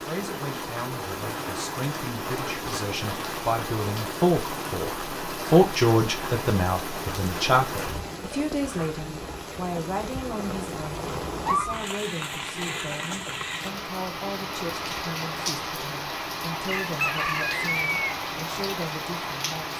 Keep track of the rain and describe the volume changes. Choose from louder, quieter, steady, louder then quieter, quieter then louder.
steady.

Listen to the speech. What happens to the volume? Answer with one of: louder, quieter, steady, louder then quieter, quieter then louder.
louder then quieter.